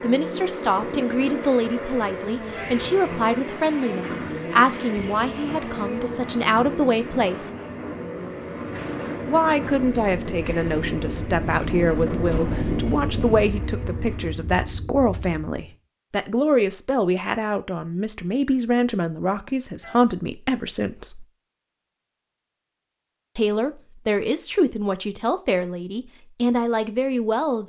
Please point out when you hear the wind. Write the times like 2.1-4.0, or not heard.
0.1-15.5.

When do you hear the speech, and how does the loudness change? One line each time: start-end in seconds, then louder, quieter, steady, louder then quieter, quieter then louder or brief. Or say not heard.
0.0-7.5 steady
9.2-21.2 steady
23.4-27.6 steady.